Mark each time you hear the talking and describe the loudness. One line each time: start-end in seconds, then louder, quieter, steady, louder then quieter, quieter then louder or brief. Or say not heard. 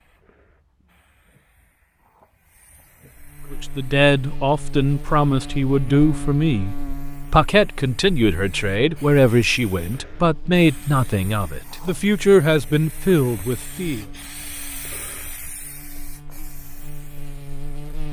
3.5-14.1 steady.